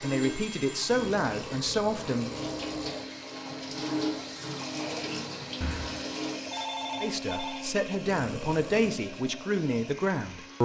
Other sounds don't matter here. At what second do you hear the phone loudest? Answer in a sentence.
The volume of the phone peaks at 7 seconds.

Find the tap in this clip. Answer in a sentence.
The tap can be heard from 0.0 to 6.5 s.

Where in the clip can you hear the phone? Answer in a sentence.
You can hear the phone from 0.0 to 0.9 s and from 5.6 to 7.7 s.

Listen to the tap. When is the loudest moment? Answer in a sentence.
The loudest moment of the tap is at 4 seconds.